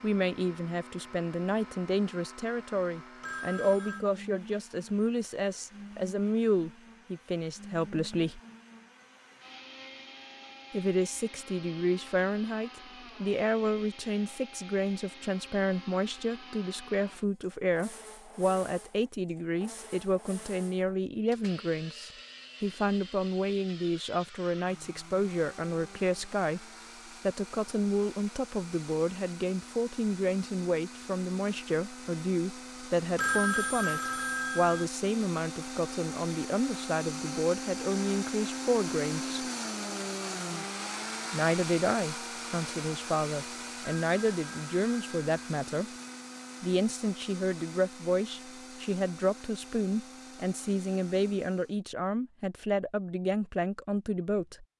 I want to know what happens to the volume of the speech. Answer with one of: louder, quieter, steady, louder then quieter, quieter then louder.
steady.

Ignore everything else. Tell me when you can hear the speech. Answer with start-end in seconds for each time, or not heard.
0.0-8.4, 10.7-26.6, 27.2-39.5, 41.3-45.9, 46.6-54.6.